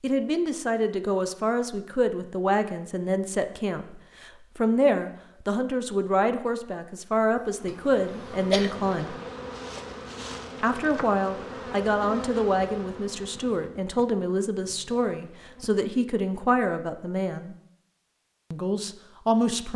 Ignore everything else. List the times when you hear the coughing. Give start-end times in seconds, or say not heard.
7.7-8.8.